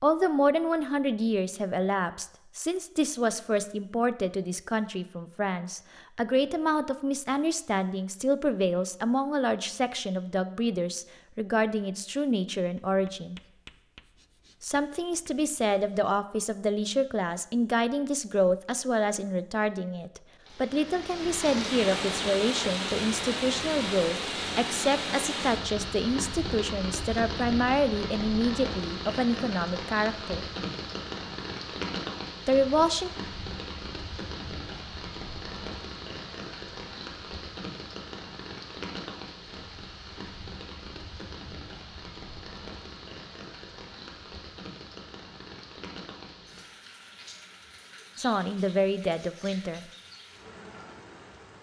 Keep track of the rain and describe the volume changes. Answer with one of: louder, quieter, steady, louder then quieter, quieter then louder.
quieter.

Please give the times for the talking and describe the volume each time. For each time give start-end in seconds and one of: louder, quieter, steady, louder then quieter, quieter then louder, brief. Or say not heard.
0.0-13.4 steady
14.6-30.4 steady
32.5-33.1 brief
48.1-49.9 brief.